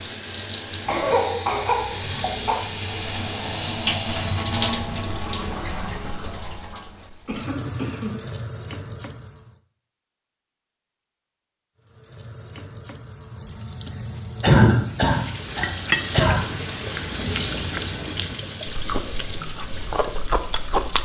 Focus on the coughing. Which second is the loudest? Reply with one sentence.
The volume of the coughing peaks at 15 seconds.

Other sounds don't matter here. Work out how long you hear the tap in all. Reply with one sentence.
The tap can be heard for 19 seconds in total.